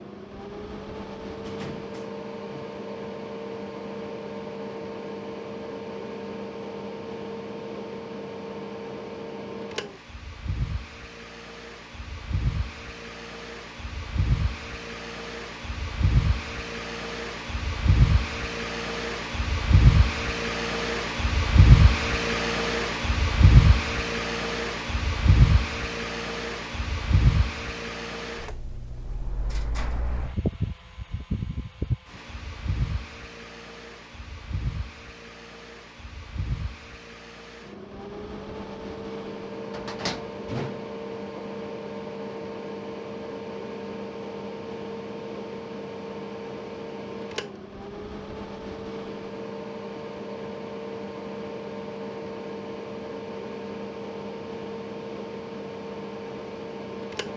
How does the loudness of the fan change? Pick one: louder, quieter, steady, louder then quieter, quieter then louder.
louder then quieter.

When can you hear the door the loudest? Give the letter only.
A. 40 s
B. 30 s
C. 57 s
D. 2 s
A.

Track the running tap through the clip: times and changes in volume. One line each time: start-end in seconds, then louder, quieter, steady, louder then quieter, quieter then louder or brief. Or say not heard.
not heard.